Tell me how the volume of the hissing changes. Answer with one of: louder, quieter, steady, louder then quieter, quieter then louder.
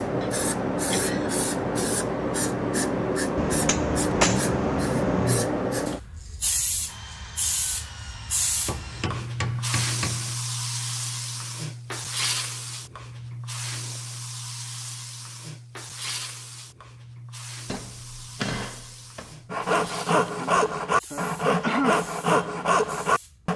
quieter.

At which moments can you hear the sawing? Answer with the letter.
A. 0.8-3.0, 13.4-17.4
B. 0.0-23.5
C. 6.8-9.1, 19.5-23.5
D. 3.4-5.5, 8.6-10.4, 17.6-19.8
C.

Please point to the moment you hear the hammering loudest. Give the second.
4 s.